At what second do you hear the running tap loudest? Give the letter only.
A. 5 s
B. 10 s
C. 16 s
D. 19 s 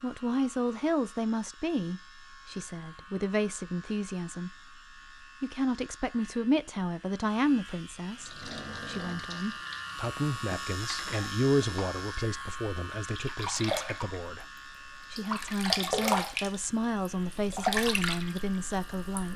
C.